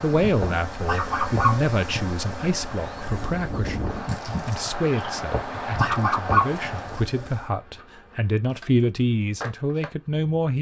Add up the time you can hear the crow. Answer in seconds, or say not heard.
not heard.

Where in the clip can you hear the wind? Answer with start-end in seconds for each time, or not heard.
0.0-7.2.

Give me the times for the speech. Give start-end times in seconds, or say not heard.
0.0-10.5.